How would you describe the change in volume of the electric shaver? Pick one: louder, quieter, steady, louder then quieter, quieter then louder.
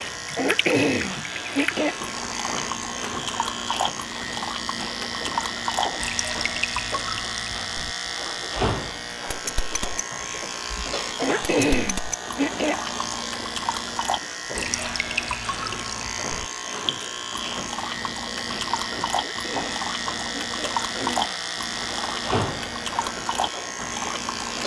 steady.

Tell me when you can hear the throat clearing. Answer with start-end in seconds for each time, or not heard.
0.3-1.9, 11.2-12.8, 19.1-21.4.